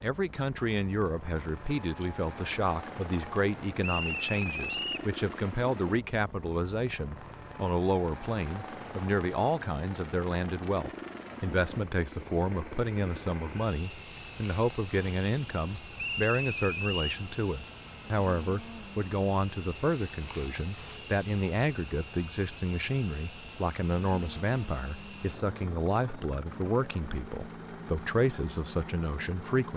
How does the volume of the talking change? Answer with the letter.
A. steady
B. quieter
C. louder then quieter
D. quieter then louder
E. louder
A.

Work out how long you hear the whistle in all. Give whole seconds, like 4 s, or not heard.
2 s.